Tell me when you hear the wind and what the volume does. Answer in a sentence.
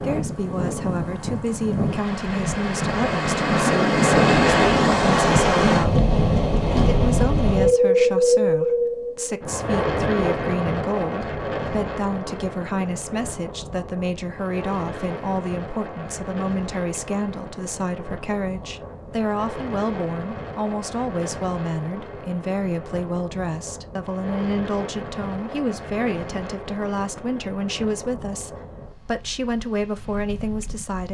The wind can be heard from 0.0 to 31.0 s, getting quieter.